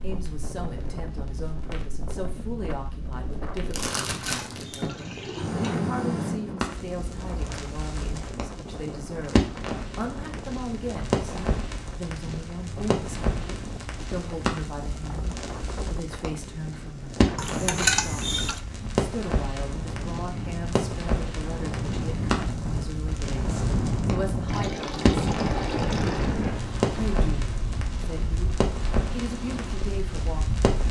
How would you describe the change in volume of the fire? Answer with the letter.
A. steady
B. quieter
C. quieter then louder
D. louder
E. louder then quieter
A.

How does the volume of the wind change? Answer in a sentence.
The loudness of the wind goes up.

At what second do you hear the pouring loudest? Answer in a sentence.
The volume of the pouring peaks at 18 seconds.